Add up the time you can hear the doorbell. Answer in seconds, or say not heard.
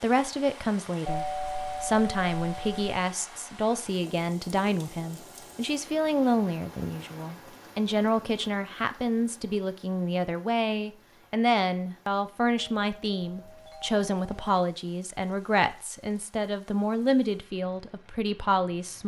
4 s.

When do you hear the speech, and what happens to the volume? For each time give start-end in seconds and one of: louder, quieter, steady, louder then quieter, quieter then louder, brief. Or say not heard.
0.0-19.0 steady.